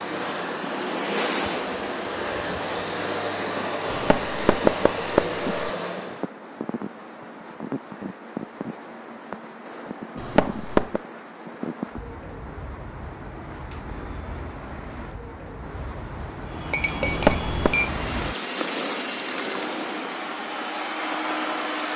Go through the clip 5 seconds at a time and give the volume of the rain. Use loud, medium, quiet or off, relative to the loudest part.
loud, medium, medium, loud, medium.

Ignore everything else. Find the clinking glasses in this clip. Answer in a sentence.
The clinking glasses can be heard from 16.7 to 17.9 s.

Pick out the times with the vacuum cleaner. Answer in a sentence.
You can hear the vacuum cleaner from 0.0 to 6.3 s and from 16.4 to 21.9 s.